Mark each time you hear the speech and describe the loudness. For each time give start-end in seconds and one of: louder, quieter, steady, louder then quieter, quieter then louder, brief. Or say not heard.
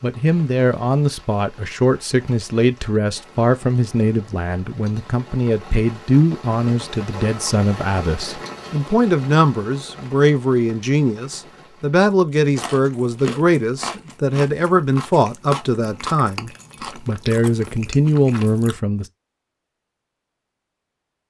0.0-19.1 steady.